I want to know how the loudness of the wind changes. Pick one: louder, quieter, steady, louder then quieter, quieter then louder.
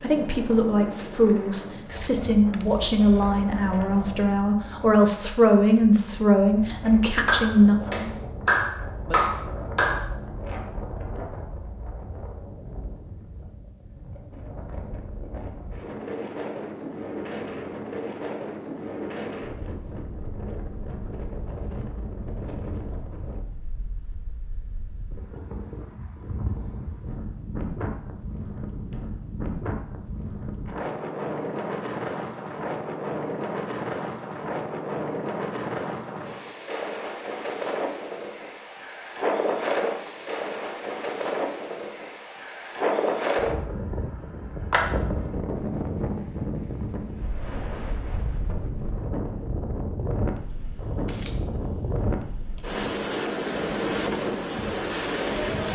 louder.